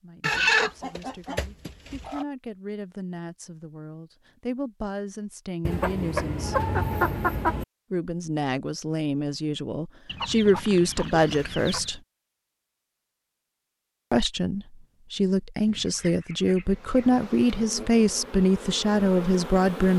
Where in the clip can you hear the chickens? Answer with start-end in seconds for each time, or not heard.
0.2-2.2, 5.7-7.7, 10.1-12.0, 15.7-17.2.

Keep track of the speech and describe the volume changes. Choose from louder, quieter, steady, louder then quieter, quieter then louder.
louder.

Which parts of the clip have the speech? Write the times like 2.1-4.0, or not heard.
0.0-6.5, 7.9-12.0, 14.1-19.9.